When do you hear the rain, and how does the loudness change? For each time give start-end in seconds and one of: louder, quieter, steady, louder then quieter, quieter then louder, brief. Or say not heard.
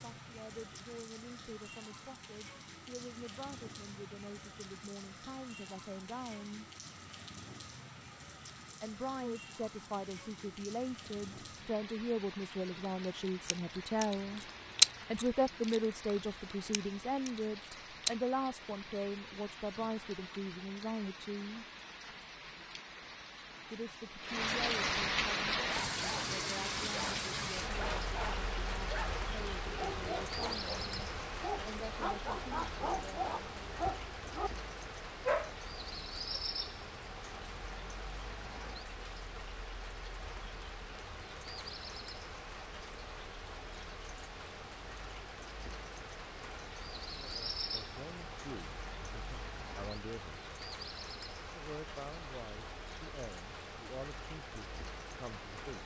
0.0-55.8 louder then quieter.